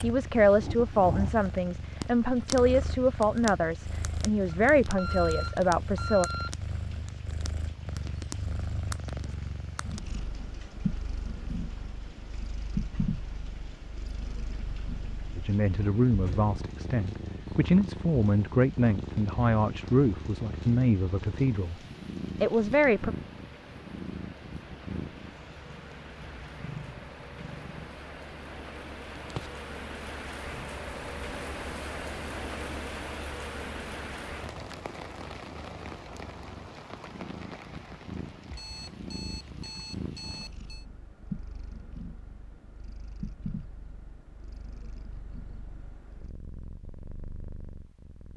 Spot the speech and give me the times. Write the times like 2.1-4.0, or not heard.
0.0-6.3, 15.3-21.8, 22.4-23.1.